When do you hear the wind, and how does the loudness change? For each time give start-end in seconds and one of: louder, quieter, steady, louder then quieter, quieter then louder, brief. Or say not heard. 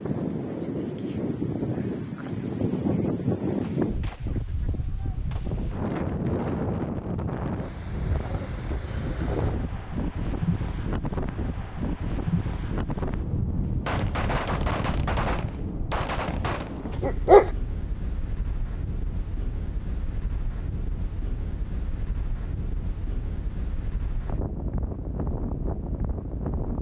0.0-26.7 quieter.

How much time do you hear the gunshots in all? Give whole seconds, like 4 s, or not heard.
5 s.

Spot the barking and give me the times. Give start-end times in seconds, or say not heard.
16.9-17.5.